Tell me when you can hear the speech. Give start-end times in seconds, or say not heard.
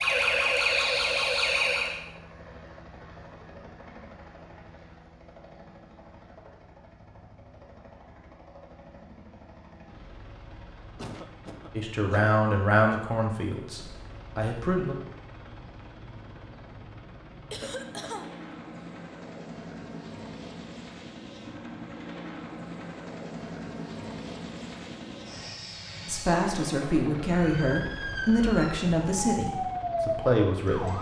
11.8-14.9, 26.1-30.9.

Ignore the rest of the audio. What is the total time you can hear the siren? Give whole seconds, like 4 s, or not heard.
6 s.